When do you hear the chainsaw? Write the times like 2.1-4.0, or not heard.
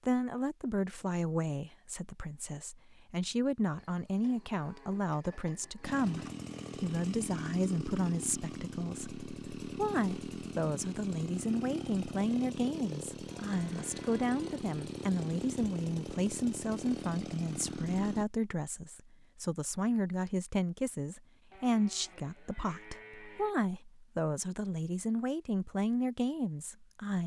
5.8-18.2.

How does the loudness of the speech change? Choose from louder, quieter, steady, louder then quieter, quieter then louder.
steady.